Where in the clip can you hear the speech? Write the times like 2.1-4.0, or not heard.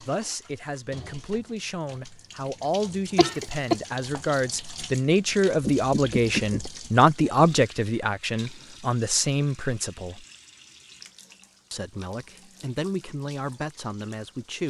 0.0-10.2, 11.7-14.6.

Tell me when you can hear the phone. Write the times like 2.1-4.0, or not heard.
5.6-6.7.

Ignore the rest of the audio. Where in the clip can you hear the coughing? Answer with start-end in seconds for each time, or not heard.
3.1-4.2.